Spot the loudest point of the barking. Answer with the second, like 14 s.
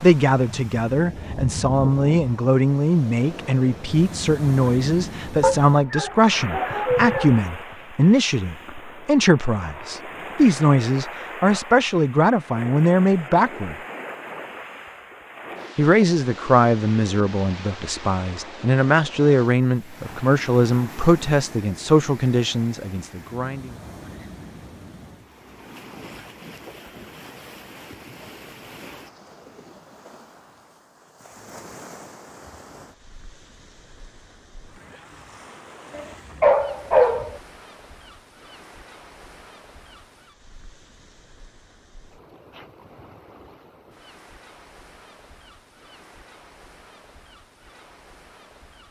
37 s.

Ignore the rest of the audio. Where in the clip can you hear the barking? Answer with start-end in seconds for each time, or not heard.
5.4-7.3, 36.0-37.4.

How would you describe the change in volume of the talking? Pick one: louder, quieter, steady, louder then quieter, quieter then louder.
steady.